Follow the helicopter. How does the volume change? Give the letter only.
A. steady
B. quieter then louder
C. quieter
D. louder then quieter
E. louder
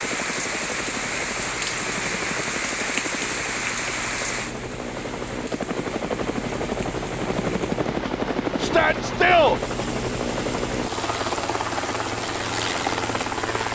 E.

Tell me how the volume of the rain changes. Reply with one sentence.
The volume of the rain goes down.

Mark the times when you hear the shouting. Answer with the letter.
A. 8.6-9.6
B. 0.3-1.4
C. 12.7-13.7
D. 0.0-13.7
A.